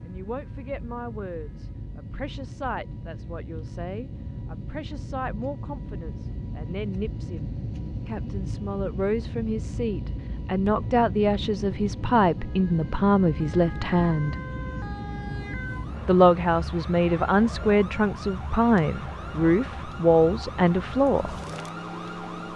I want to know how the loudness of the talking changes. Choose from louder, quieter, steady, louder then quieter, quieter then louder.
louder.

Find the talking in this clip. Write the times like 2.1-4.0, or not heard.
0.1-14.3, 16.1-21.4.